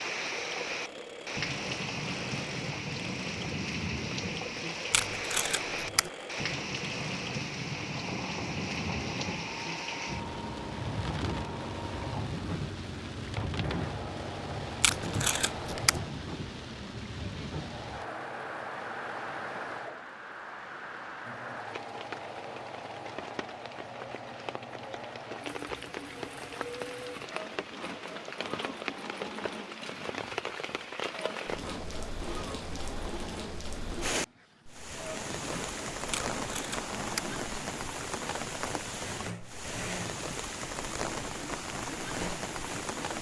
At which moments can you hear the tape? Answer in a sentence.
The tape can be heard from 4.9 to 6.1 s, from 14.8 to 16.0 s and from 36.1 to 37.3 s.